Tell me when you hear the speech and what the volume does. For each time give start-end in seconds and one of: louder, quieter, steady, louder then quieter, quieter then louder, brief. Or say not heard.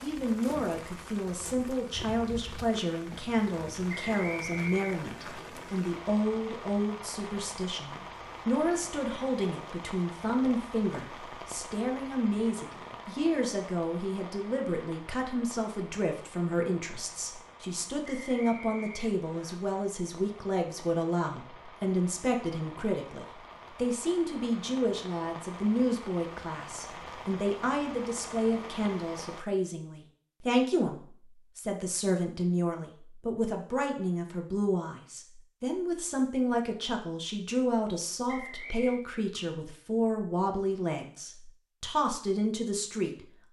0.0-43.2 steady.